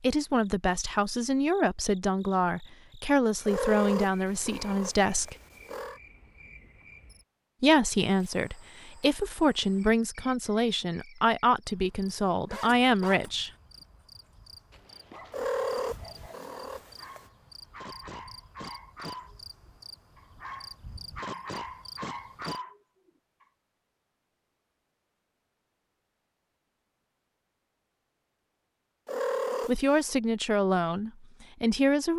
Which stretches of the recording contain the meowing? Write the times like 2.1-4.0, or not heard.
3.5-6.0, 15.3-17.2, 29.1-30.1.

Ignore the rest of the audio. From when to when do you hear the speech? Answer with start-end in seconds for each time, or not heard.
0.0-5.3, 7.6-13.5, 29.6-32.1.